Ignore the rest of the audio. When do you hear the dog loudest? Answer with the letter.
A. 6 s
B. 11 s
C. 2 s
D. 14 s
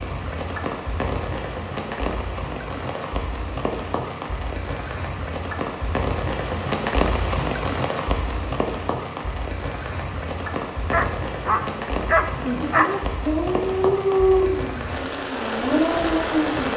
D.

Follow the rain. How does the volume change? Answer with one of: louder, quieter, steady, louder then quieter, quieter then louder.
steady.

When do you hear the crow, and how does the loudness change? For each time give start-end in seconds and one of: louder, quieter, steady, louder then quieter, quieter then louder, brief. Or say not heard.
not heard.